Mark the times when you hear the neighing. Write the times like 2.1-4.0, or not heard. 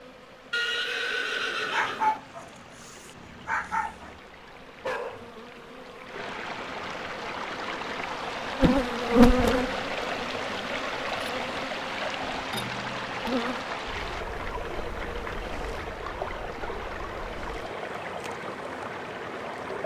0.5-2.2.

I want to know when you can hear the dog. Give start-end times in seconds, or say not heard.
1.7-4.2, 4.8-5.3.